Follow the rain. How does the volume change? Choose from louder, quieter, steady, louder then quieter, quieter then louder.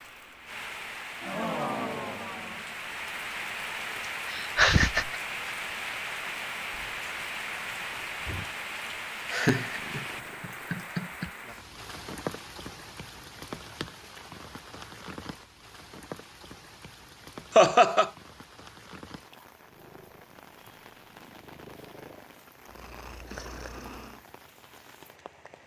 quieter.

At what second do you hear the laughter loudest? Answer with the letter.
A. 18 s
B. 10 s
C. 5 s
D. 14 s
A.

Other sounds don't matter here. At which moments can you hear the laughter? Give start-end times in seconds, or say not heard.
4.2-5.2, 9.3-11.3, 17.6-18.1.